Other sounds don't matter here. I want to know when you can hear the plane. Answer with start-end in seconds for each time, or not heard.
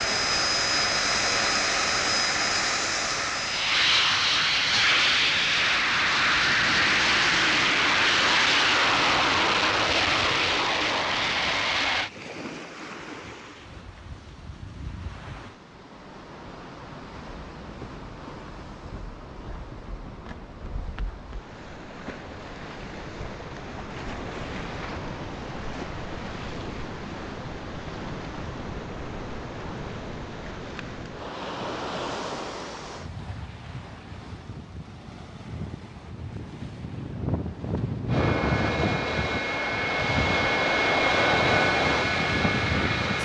0.0-12.1, 38.0-43.2.